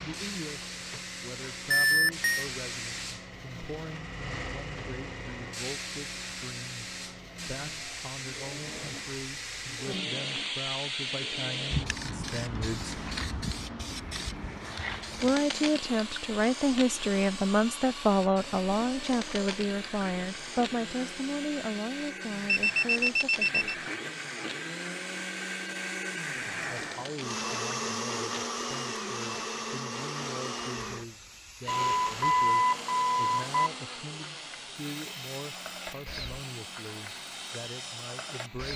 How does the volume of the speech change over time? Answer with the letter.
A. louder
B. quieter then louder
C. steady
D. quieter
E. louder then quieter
E.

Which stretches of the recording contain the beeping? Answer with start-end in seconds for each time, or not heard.
1.7-2.5, 22.4-23.8, 31.6-33.7.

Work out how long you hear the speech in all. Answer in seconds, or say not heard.
34 s.